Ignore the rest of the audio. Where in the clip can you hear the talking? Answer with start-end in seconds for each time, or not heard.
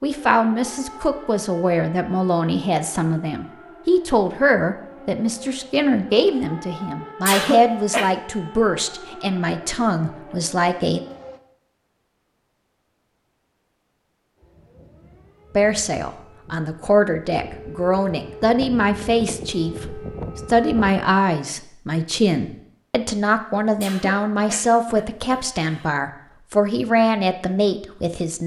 0.0-11.0, 15.6-28.4.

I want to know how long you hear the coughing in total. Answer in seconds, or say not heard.
3 s.